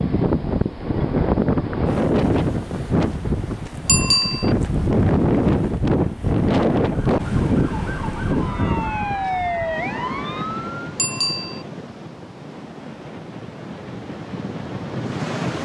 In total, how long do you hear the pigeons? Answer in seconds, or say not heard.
not heard.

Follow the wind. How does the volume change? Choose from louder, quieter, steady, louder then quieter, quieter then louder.
quieter.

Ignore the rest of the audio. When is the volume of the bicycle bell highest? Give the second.
4 s.